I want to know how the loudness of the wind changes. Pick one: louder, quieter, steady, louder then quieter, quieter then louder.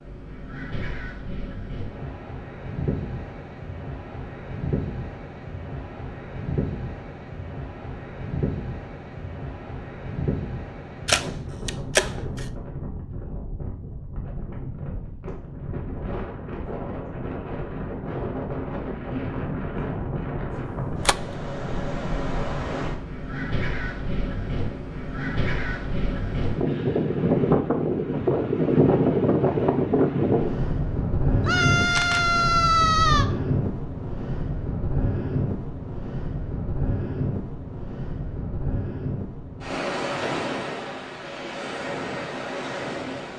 louder then quieter.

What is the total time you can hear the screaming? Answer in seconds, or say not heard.
2 s.